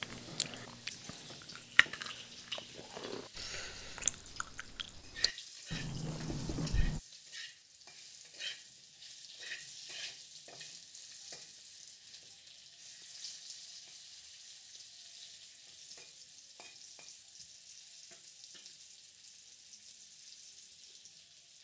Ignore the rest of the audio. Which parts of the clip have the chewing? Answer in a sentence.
The chewing can be heard from 0.0 to 7.0 s.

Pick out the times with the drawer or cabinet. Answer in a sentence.
You can't hear the drawer or cabinet here.